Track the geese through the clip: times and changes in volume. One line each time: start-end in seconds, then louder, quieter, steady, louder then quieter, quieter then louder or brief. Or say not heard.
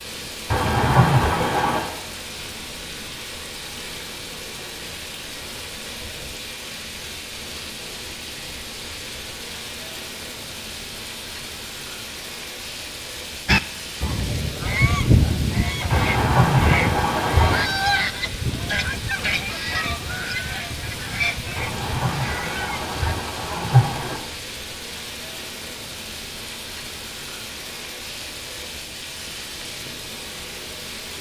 13.4-23.1 quieter.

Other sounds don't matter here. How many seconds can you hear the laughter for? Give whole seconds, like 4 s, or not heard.
6 s.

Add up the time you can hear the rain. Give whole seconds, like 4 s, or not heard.
31 s.